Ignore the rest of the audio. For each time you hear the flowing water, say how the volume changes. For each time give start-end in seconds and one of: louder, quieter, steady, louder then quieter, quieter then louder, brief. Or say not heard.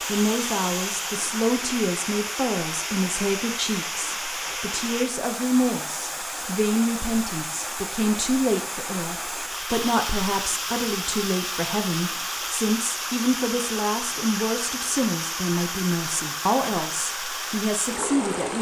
0.0-18.5 steady.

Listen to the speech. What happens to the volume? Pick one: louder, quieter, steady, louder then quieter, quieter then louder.
steady.